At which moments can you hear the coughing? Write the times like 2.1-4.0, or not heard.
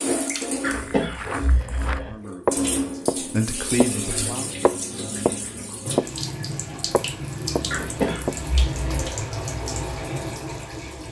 0.6-2.1, 7.7-9.2.